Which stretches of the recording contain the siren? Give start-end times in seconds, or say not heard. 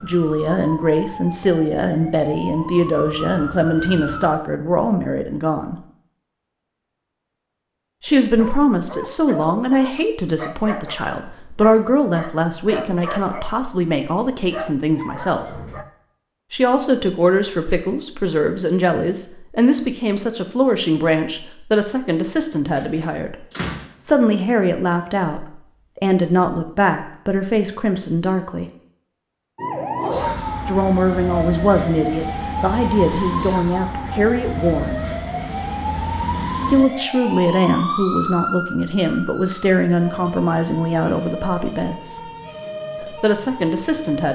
0.0-4.3, 29.6-44.3.